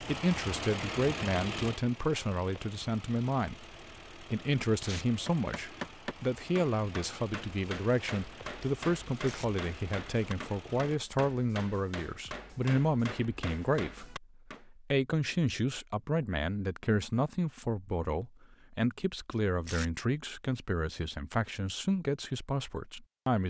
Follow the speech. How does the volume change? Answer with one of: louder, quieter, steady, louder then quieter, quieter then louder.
steady.